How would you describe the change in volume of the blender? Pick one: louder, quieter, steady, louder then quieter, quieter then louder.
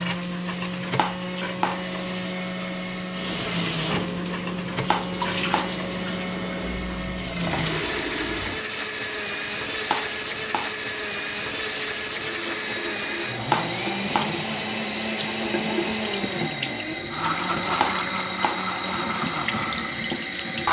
steady.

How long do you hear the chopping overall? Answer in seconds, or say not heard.
4 s.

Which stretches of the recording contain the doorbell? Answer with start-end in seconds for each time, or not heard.
not heard.